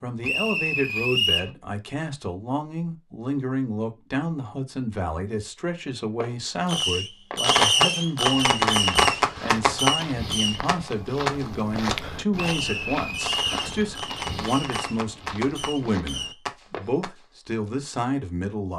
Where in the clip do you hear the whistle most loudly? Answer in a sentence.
The volume of the whistle peaks at 1 second.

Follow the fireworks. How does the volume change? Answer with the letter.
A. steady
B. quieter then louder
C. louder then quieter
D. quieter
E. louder
D.